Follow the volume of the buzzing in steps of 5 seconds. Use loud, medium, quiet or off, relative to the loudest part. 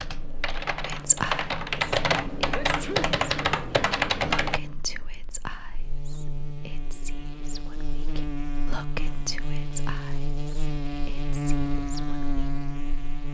medium, medium, loud.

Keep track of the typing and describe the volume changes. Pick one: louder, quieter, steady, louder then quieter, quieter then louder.
louder.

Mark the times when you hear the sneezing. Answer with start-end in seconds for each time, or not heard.
2.5-3.1.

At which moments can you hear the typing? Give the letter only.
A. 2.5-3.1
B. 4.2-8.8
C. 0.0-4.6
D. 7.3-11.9
C.